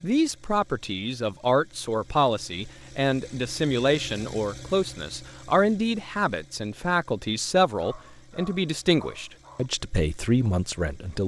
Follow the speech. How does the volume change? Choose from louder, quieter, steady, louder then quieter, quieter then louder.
steady.